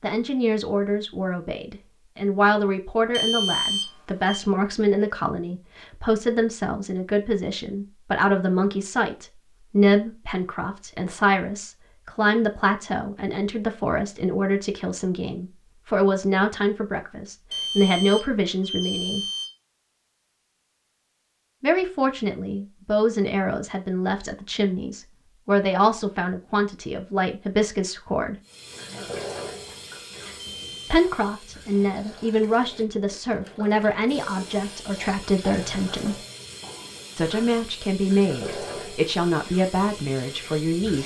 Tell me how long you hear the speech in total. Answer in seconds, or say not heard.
35 s.